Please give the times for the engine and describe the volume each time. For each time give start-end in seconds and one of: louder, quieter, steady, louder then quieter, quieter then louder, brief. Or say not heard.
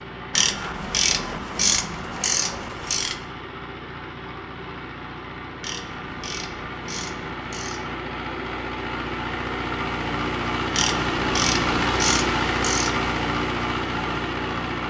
0.0-14.8 louder.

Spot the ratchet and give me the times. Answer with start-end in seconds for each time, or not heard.
0.3-3.2, 5.6-8.0, 10.8-13.1.